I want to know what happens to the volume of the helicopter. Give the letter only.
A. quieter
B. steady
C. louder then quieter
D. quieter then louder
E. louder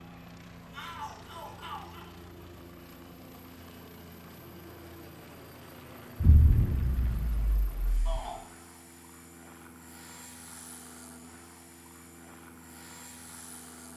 B.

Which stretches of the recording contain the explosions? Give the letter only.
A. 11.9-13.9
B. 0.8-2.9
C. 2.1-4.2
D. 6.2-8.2
D.